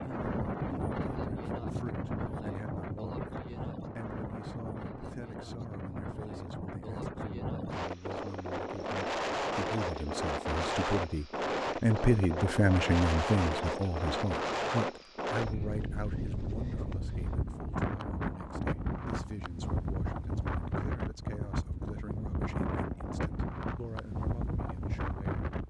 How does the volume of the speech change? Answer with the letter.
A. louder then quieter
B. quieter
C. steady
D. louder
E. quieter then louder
A.